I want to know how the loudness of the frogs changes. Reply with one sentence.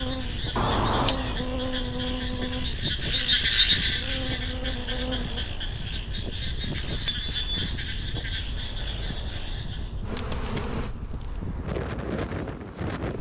The volume of the frogs goes up, then down.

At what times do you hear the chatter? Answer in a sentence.
You can't hear the chatter here.